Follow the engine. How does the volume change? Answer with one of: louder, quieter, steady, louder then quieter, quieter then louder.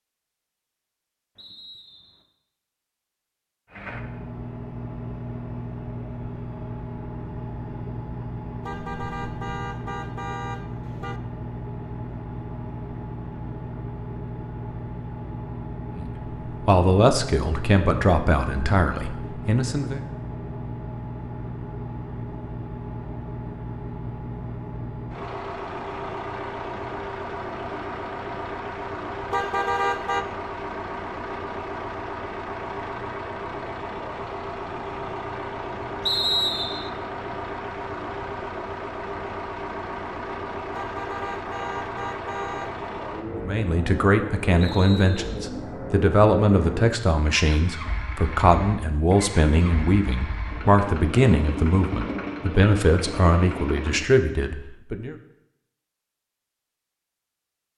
steady.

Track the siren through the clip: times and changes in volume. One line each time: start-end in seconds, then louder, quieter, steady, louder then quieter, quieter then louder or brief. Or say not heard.
not heard.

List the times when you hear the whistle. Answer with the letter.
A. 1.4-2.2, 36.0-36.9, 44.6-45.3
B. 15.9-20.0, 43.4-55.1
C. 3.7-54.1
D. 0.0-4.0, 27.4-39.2
A.